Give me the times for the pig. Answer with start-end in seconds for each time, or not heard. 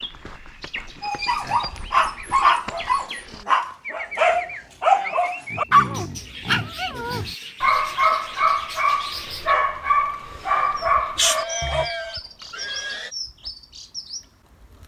0.9-1.8, 5.5-7.3, 11.2-13.1.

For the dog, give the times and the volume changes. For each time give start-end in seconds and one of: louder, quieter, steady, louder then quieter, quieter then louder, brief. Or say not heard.
1.0-11.9 steady.